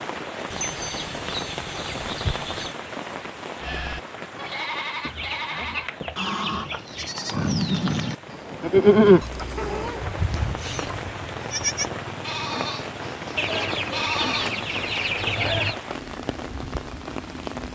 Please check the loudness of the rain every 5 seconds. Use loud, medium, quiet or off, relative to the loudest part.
loud, medium, loud, loud.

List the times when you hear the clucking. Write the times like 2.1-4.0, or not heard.
0.5-2.8, 5.0-7.2, 9.2-11.1, 13.3-15.8.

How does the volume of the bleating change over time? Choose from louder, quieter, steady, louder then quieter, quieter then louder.
louder then quieter.